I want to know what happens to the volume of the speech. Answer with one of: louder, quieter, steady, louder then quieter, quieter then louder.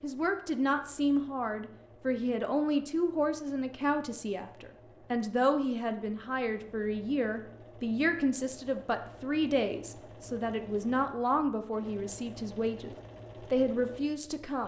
steady.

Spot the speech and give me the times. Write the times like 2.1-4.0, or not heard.
0.0-14.6.